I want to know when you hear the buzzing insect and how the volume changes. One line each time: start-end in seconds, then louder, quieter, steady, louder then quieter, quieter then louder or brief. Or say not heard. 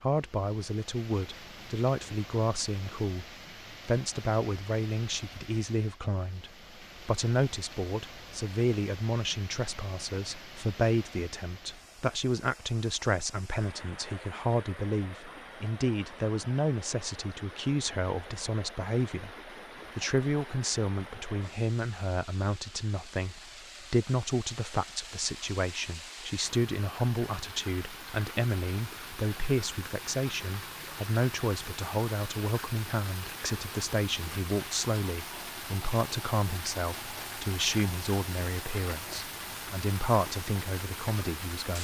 not heard.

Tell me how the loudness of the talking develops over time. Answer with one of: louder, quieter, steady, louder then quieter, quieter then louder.
steady.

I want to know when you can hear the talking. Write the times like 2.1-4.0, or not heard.
0.0-3.2, 3.9-41.8.